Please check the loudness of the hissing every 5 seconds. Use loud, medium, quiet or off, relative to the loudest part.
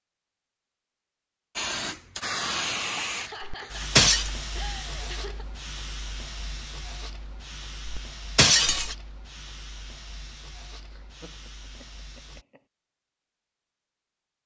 loud, medium, quiet.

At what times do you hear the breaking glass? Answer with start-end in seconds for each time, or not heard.
3.4-4.3, 7.8-8.9.